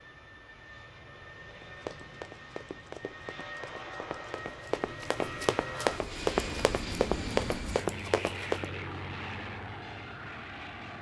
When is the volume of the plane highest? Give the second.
7 s.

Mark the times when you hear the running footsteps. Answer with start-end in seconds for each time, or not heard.
1.5-8.7.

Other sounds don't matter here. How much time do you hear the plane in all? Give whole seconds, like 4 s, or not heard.
11 s.